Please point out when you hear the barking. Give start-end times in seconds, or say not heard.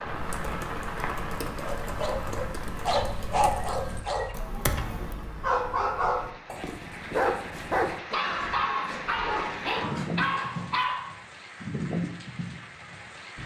1.6-11.1.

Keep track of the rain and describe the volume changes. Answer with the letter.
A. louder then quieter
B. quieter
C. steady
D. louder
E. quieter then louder
E.